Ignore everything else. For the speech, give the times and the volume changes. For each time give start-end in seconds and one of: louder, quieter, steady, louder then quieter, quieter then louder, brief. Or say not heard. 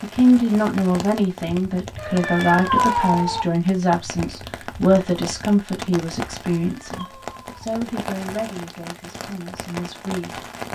0.0-10.5 quieter.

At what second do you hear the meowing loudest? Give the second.
3 s.